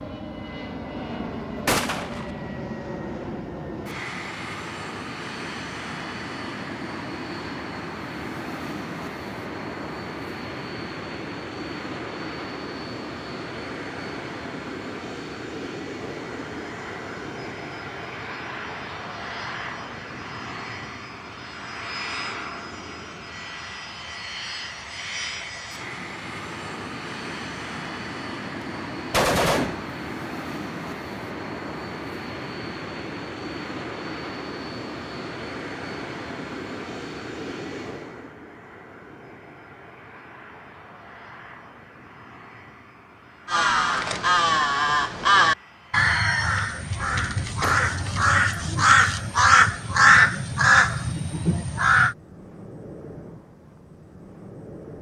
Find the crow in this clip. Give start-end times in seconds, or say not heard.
43.5-52.1.